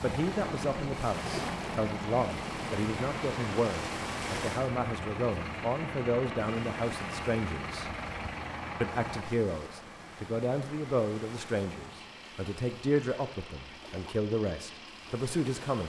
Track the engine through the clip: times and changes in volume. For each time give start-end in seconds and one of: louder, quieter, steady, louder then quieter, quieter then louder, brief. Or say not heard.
0.0-15.8 quieter.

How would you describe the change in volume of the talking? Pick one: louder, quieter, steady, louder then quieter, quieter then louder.
steady.